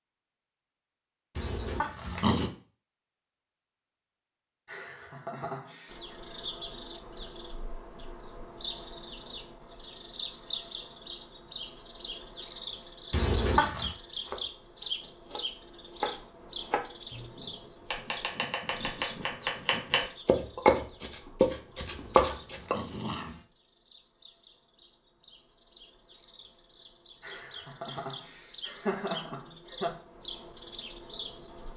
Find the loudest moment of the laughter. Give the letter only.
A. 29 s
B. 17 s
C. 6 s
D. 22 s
A.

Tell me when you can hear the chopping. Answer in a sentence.
The chopping can be heard from 14.2 to 22.8 s.